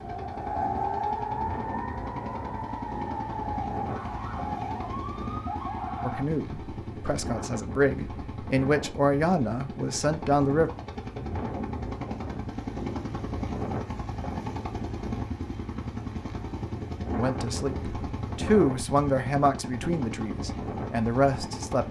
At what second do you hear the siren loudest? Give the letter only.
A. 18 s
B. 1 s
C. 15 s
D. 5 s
B.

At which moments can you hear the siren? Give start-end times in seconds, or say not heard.
0.0-6.2.